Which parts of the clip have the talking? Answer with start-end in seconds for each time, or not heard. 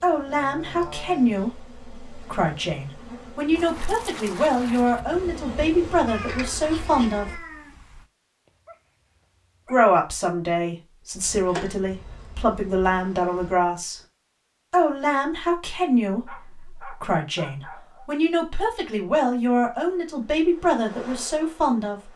0.0-7.4, 9.7-14.0, 14.7-22.1.